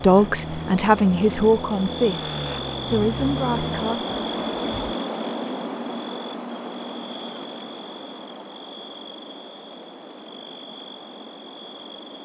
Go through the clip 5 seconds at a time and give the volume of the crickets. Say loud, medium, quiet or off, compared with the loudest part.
loud, loud, medium.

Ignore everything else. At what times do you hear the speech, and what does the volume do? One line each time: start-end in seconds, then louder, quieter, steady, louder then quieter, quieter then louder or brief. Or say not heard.
0.0-4.2 quieter.